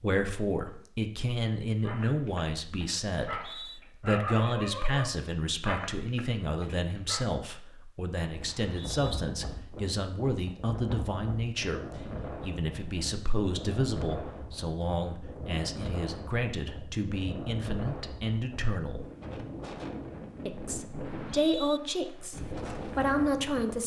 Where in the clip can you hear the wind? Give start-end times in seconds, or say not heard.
8.2-23.8.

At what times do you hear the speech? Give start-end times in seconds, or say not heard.
0.0-19.1, 20.4-23.8.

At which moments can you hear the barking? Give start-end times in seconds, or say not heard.
1.8-7.3.